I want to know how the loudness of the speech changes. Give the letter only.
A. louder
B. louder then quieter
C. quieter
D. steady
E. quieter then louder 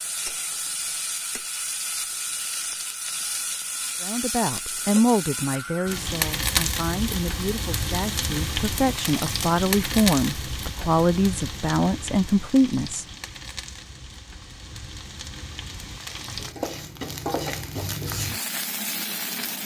E.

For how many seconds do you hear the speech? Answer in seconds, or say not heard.
9 s.